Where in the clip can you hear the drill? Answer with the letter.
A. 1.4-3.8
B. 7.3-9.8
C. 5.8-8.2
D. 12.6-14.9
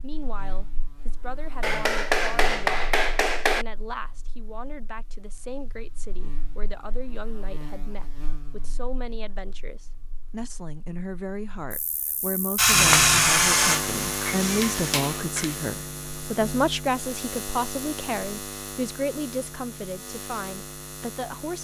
D.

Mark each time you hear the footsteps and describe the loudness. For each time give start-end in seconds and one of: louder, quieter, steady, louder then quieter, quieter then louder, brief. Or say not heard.
not heard.